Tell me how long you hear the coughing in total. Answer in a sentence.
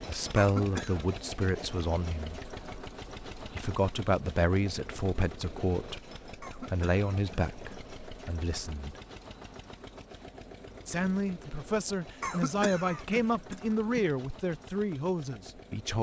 You can hear the coughing for 4 seconds altogether.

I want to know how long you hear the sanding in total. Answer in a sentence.
The sanding can't be heard in this clip.